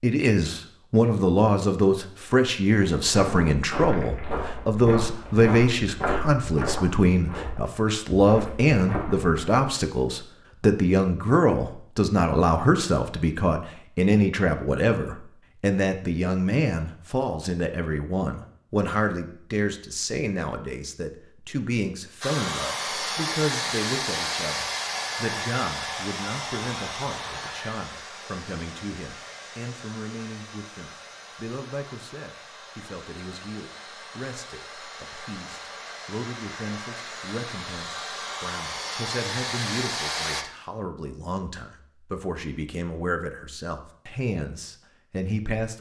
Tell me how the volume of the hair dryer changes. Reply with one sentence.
The volume of the hair dryer goes down, then up.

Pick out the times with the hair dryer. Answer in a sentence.
You can hear the hair dryer from 22.2 to 40.5 s.